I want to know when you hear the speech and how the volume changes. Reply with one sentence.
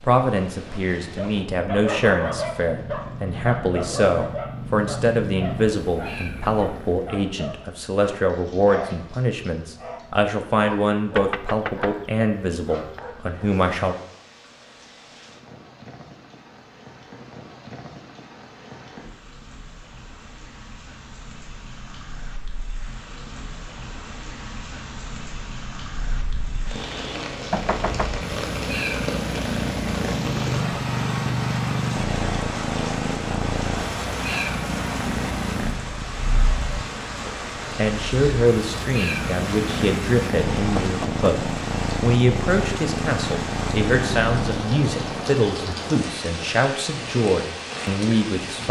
You can hear the speech from 0.0 to 13.9 s, at a steady volume; and from 37.2 to 48.6 s, at a steady volume.